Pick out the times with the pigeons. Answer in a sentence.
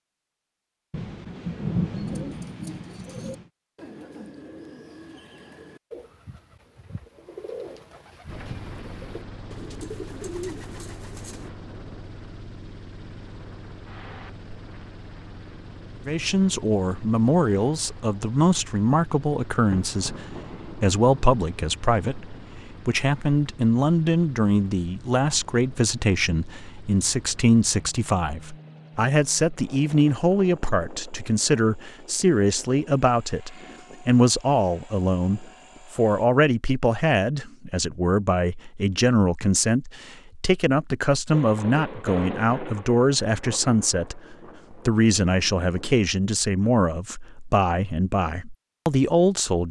The pigeons can be heard from 1.9 to 11.5 s.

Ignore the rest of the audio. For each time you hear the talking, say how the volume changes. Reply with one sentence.
The talking can be heard from 16.1 to 49.6 s, at a steady volume.